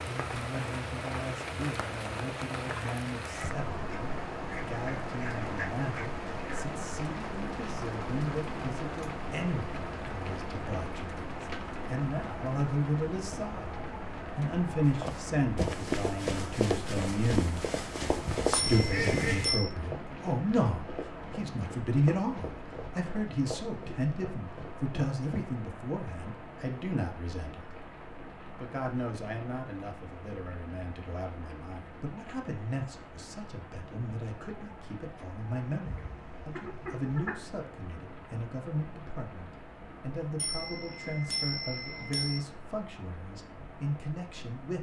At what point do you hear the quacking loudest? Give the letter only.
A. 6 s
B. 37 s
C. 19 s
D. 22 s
C.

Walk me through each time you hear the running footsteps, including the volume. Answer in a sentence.
The running footsteps can be heard from 15.0 to 25.2 s, getting quieter.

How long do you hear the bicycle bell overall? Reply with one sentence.
The bicycle bell can be heard for 3 seconds in total.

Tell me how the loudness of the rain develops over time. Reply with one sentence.
The volume of the rain goes down.